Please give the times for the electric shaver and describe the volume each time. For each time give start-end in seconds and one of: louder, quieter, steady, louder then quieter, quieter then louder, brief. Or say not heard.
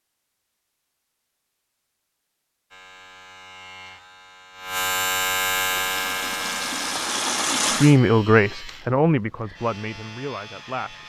2.7-11.0 louder then quieter.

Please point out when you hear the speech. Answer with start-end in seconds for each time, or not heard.
7.7-11.0.